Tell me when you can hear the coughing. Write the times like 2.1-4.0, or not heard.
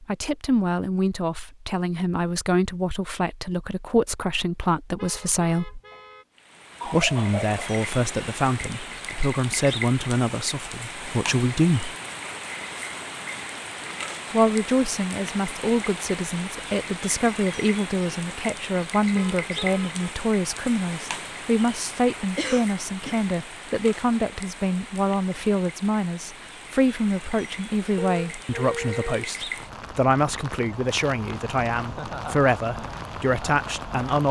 5.9-7.6, 22.4-23.2.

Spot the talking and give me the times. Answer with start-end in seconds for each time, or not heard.
0.0-5.8, 6.8-11.9, 14.3-34.2.